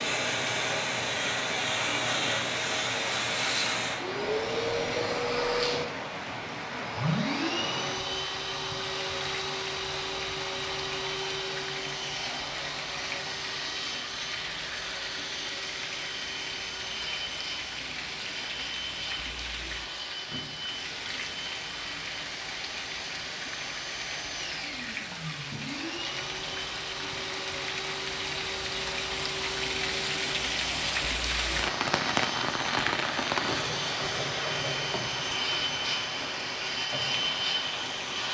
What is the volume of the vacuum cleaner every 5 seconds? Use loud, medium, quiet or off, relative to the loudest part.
loud, loud, medium, medium, medium, medium, medium, loud.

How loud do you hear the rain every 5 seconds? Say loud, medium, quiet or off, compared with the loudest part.
medium, medium, medium, medium, medium, medium, loud, medium.